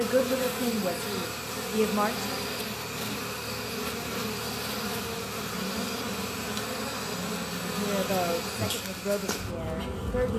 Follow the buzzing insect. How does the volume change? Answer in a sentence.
The loudness of the buzzing insect stays about the same.